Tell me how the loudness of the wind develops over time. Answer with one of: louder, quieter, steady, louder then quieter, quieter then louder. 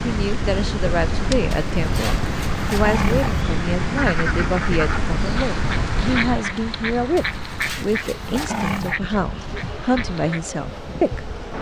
quieter.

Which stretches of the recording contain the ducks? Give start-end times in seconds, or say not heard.
4.0-10.4.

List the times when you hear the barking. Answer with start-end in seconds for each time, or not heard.
1.5-3.5, 7.2-9.0.